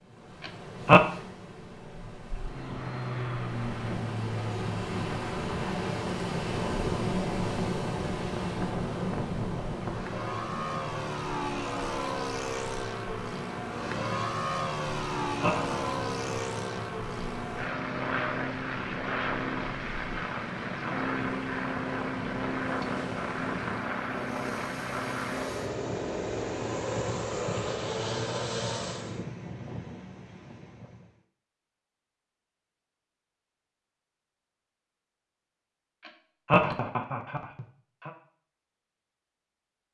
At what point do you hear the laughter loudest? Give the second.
1 s.